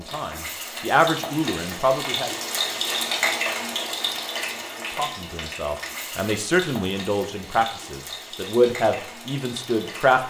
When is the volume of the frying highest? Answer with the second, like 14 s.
3 s.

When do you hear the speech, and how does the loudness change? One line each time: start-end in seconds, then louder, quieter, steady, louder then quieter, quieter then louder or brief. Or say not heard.
0.0-2.3 brief
4.8-10.2 louder then quieter.